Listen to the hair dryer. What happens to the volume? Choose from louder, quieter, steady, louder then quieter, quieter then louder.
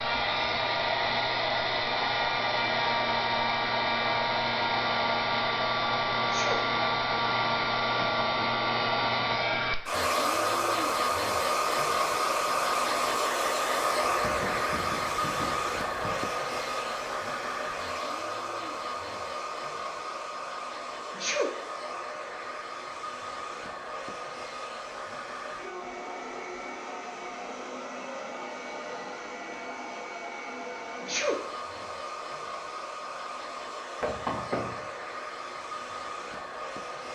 quieter.